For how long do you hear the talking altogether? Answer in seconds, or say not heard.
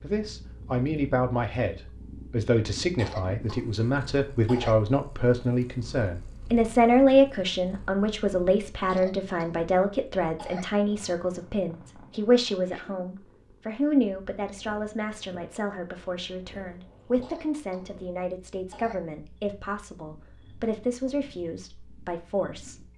23 s.